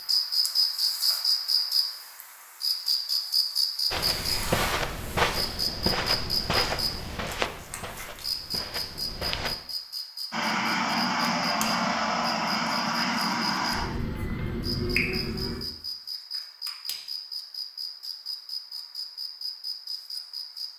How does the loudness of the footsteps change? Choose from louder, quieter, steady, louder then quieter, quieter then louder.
quieter.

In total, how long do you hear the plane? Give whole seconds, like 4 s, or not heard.
5 s.